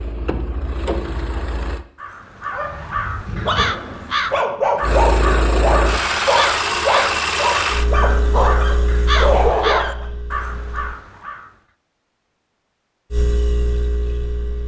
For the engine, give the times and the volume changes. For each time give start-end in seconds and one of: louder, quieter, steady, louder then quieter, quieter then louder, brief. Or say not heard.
0.0-1.9 brief
4.8-11.0 quieter
13.1-14.6 brief.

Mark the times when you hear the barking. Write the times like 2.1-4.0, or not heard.
2.5-10.1.